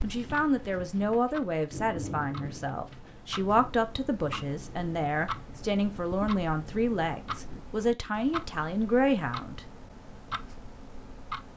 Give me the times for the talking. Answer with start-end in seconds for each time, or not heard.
0.0-9.7.